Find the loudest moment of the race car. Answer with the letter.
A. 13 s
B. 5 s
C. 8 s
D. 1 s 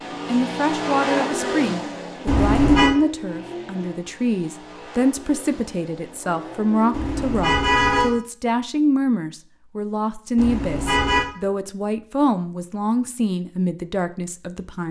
D.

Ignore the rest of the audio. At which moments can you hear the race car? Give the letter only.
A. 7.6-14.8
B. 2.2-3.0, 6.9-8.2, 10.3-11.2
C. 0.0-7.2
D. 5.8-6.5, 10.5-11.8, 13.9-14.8
C.